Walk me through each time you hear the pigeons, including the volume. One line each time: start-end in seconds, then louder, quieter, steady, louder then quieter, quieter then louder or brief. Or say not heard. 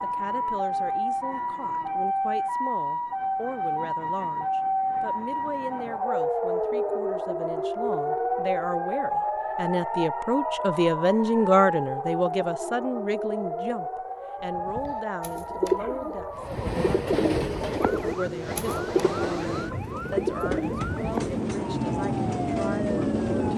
14.4-21.4 steady.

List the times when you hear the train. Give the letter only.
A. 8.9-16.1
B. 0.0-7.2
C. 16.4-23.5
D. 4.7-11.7
C.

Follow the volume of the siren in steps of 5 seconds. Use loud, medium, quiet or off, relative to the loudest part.
loud, loud, loud, medium, medium.